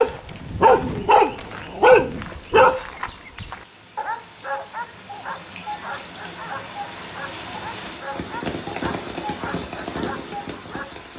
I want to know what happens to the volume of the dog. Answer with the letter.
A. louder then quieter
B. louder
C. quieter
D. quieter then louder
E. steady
C.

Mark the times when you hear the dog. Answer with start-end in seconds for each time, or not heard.
0.0-11.1.